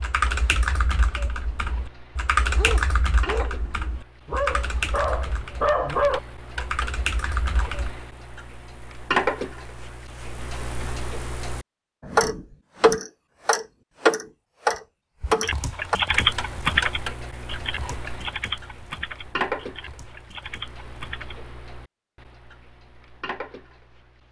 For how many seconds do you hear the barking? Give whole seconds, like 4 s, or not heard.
4 s.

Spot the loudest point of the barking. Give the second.
6 s.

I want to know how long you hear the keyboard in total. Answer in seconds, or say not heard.
14 s.